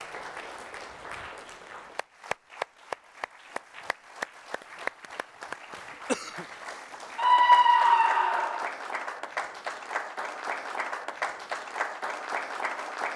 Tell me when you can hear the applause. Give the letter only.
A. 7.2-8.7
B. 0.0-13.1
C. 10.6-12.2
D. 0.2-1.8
B.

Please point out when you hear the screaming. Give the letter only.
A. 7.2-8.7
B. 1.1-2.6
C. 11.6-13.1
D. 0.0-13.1
A.